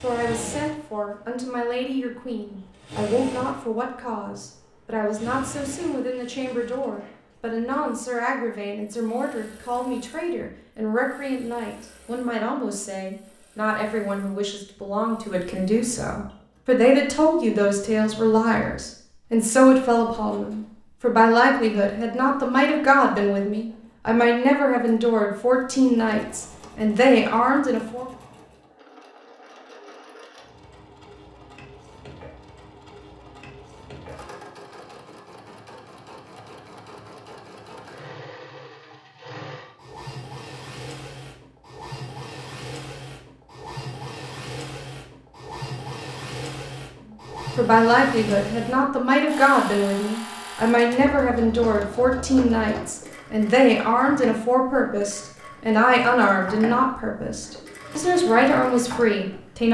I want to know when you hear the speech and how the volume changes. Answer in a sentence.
The speech can be heard from 0.0 to 28.1 s, getting louder; and from 47.5 to 59.6 s, at a steady volume.